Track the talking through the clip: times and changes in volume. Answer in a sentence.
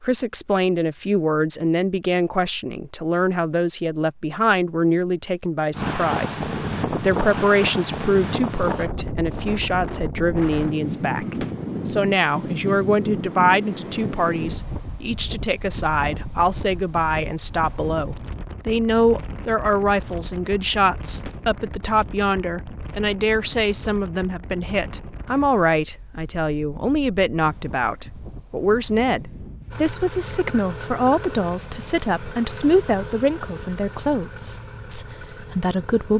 The talking can be heard from 0.0 to 36.1 s, at a steady volume.